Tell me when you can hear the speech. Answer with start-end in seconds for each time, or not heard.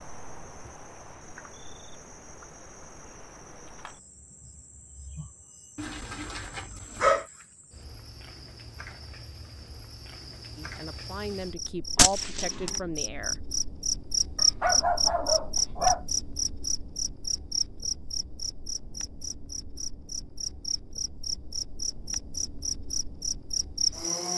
10.6-13.4.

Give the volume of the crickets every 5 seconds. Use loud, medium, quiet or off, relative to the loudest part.
quiet, quiet, loud, loud, loud.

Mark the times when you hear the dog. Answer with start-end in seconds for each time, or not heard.
5.8-7.2, 14.3-16.1.